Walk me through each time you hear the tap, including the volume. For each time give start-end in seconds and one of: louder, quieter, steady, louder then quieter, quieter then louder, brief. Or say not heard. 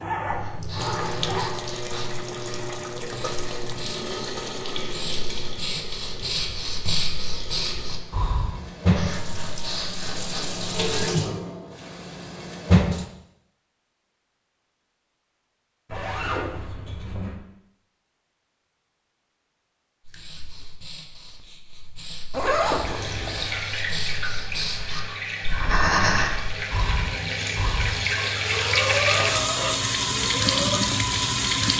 0.0-13.1 quieter then louder
22.8-31.7 louder.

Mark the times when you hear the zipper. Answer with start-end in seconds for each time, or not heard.
0.0-1.5, 15.8-17.4, 22.3-23.6.